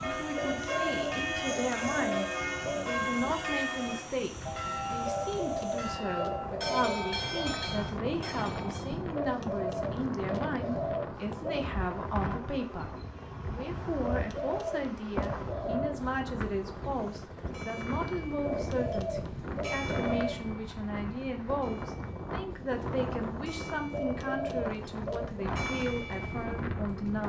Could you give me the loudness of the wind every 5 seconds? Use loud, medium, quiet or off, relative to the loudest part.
medium, loud, loud, loud, loud, loud.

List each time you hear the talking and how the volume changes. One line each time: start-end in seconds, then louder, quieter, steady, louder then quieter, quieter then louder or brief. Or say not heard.
0.0-27.2 steady.